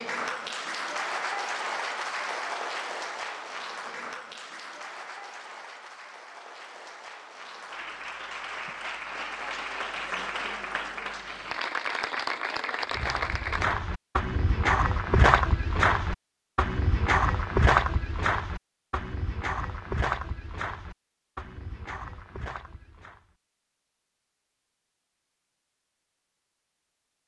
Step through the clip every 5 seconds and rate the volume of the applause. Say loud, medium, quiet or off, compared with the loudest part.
loud, medium, loud, off, off, off.